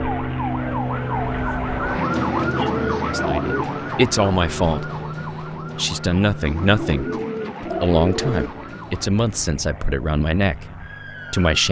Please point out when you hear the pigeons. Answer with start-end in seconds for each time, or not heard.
2.1-3.6, 6.5-8.5.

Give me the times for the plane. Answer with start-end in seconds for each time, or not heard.
0.0-11.6.